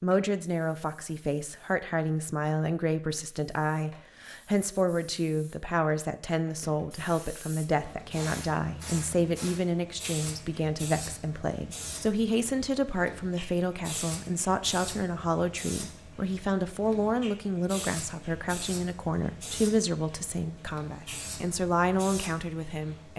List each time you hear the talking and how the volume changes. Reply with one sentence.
The talking can be heard from 0.0 to 23.1 s, at a steady volume.